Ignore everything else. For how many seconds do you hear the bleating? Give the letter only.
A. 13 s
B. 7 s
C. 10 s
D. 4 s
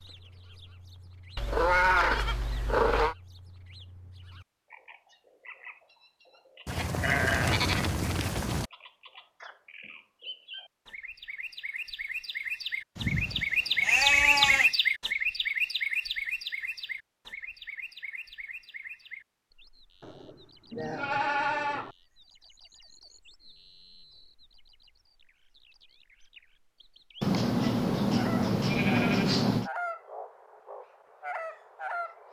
C.